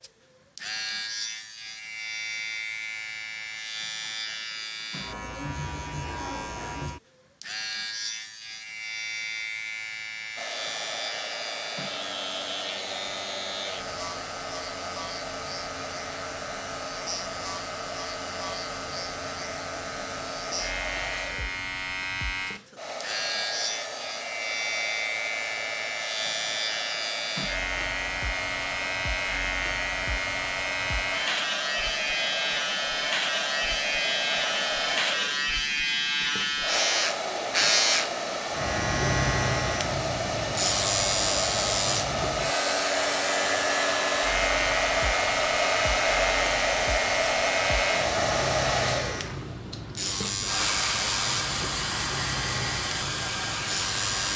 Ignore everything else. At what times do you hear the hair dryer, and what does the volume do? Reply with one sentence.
You can hear the hair dryer from 10.3 to 54.3 s, getting louder.